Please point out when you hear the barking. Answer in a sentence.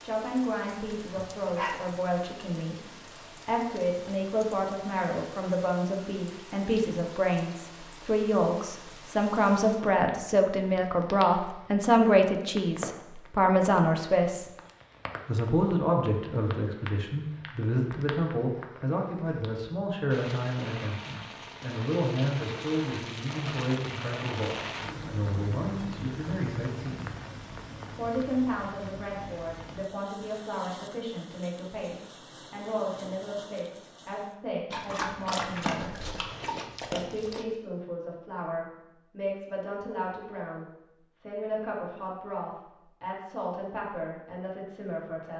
The barking can be heard from 0.8 to 1.9 s and from 34.7 to 37.5 s.